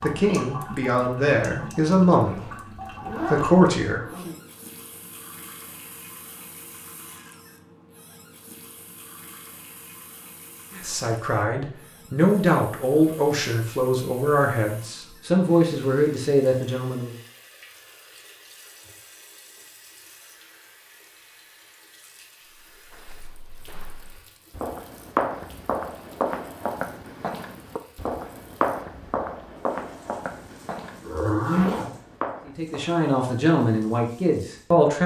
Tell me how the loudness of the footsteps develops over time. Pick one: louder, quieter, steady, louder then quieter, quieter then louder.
louder then quieter.